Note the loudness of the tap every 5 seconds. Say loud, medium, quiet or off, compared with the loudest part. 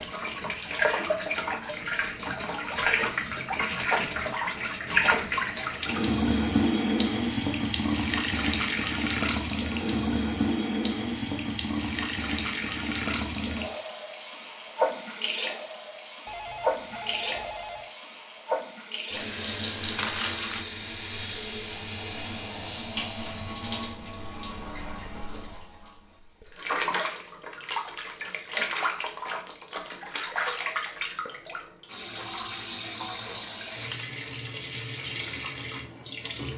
loud, loud, loud, medium, medium, medium, medium, medium.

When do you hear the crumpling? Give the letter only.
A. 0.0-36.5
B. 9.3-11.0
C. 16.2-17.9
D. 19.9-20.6
D.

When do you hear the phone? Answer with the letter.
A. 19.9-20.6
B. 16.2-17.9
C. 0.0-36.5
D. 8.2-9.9
B.